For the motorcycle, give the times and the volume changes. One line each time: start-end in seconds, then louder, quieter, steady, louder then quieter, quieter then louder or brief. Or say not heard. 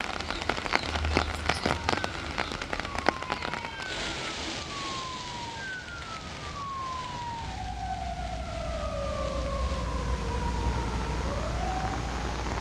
not heard.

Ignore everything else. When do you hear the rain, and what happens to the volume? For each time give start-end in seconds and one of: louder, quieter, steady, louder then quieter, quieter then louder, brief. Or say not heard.
0.0-12.5 quieter then louder.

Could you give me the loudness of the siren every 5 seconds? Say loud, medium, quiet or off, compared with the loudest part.
medium, loud, loud.